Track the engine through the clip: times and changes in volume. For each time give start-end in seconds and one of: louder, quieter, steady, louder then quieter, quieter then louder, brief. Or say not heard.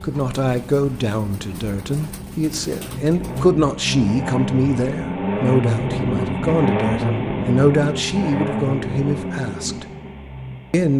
0.0-10.9 louder then quieter.